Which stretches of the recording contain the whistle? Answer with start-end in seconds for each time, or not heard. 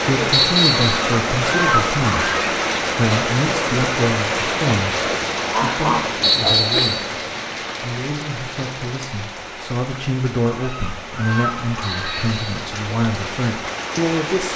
0.3-1.0, 6.2-7.0, 11.8-12.7.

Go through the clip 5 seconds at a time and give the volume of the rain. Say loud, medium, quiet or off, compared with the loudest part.
loud, medium, medium.